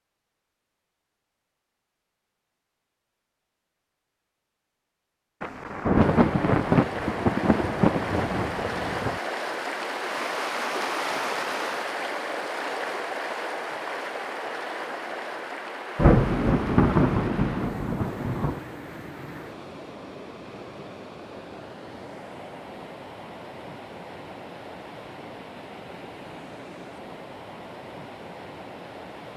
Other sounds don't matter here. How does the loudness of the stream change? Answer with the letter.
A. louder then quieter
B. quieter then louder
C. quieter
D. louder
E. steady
C.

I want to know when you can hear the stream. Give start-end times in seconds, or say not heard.
5.9-29.3.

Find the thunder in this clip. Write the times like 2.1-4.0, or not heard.
5.4-9.2, 15.9-18.6.